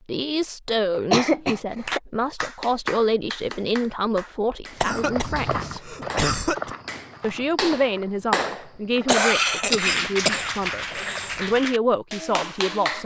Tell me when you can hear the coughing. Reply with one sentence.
The coughing can be heard from 0.9 to 2.0 s, from 4.8 to 6.7 s and from 9.1 to 11.4 s.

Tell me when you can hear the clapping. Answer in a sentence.
The clapping can be heard from 1.9 to 13.0 s.